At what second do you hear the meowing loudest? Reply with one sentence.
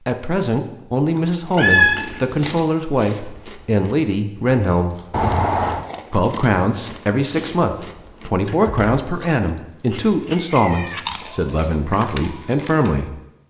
The volume of the meowing peaks at 2 seconds.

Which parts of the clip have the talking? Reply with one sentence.
The talking can be heard from 0.1 to 5.0 s and from 6.1 to 13.1 s.